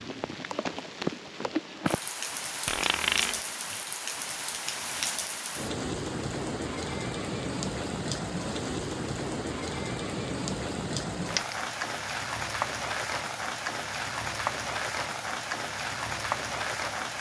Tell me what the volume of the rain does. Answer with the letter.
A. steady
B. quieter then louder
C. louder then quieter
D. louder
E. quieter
A.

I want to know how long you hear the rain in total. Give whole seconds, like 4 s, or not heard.
17 s.